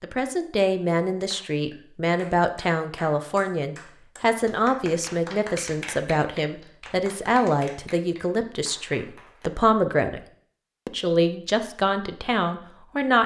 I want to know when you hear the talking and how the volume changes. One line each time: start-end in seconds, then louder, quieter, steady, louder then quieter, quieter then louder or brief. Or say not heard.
0.0-10.2 steady
10.8-13.2 brief.